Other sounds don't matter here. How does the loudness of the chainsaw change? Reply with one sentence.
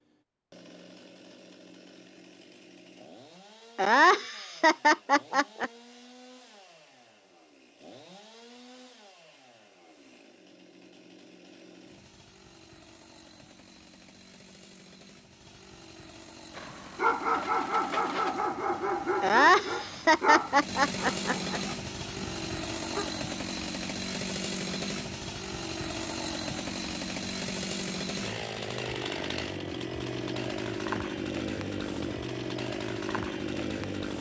The loudness of the chainsaw goes up.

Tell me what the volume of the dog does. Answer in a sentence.
The volume of the dog goes down.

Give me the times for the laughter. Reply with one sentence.
You can hear the laughter from 3.8 to 5.7 s and from 19.2 to 21.6 s.